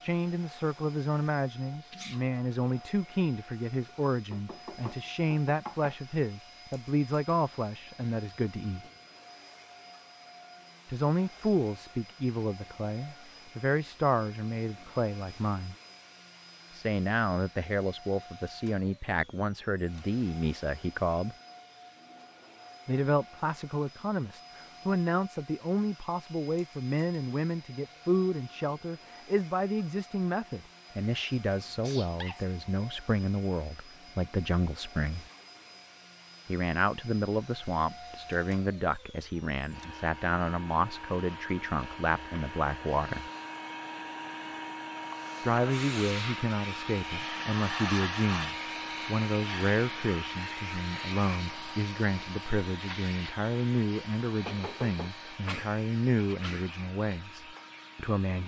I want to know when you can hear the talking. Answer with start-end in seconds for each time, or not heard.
0.0-8.8, 10.8-15.8, 16.7-21.4, 22.9-35.2, 36.5-43.3, 45.4-58.4.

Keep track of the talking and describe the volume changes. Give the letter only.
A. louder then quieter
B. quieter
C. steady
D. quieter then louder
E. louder
C.